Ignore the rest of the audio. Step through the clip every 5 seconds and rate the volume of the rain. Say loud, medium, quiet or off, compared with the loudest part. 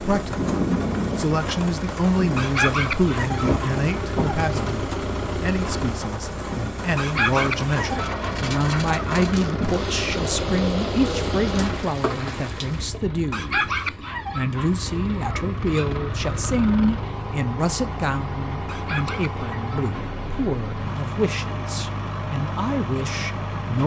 loud, loud, loud, off, off.